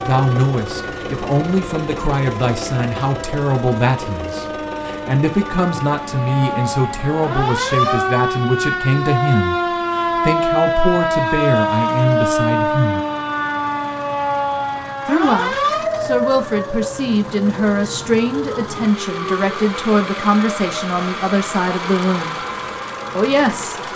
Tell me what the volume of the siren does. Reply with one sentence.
The volume of the siren goes up, then down.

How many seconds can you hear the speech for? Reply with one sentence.
You can hear the speech for 21 seconds altogether.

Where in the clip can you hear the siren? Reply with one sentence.
The siren can be heard from 0.0 to 23.9 s.